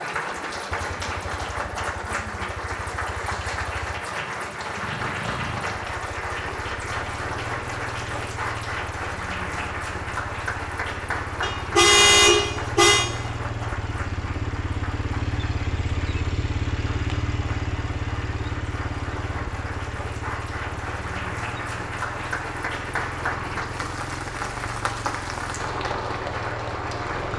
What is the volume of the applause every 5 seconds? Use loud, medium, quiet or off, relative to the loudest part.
loud, loud, loud, medium, loud, loud.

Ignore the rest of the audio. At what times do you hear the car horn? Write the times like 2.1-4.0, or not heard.
11.4-13.1.